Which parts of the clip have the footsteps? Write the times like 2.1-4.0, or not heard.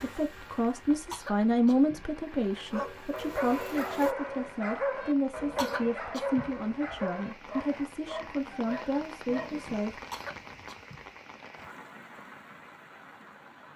not heard.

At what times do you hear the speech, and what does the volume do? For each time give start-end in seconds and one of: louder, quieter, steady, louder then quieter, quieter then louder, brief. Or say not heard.
0.0-10.0 quieter.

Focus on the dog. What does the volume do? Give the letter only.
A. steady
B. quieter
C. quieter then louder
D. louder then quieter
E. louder
B.